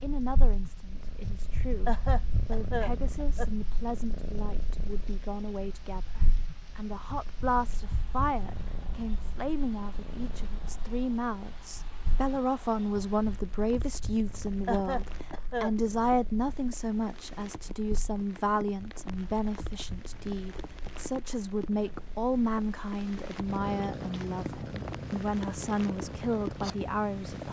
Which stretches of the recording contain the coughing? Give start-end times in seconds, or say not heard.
1.9-3.5, 14.7-15.8.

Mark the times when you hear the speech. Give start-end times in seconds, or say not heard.
0.0-27.4.